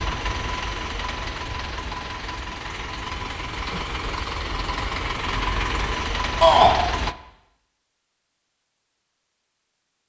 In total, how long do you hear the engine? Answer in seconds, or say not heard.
7 s.